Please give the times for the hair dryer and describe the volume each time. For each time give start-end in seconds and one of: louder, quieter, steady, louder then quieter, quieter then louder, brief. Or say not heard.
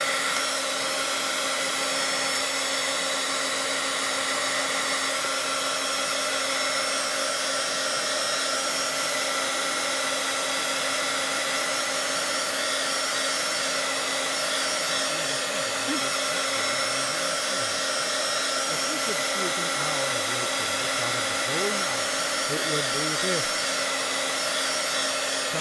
0.0-25.5 steady.